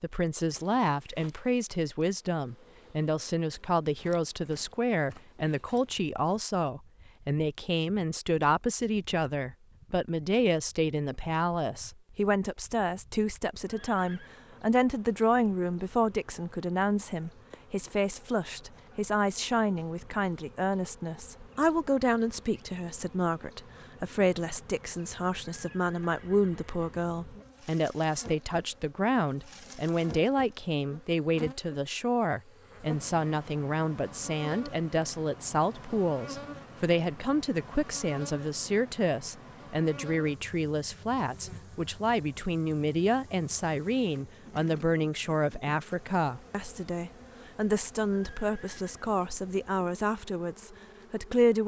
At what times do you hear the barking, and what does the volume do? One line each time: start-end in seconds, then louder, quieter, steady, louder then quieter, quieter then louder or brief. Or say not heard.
not heard.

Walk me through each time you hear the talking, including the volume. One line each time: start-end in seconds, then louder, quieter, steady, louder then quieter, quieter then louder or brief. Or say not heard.
0.0-51.6 steady.